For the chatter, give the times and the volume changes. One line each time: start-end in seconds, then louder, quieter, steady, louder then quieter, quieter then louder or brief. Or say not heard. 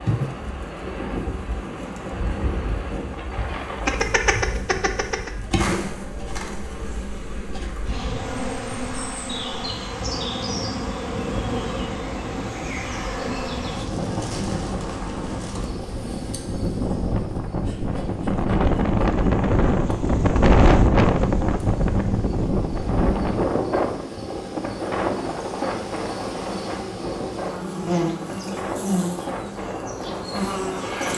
not heard.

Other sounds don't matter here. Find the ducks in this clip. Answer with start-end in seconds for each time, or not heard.
3.9-5.3.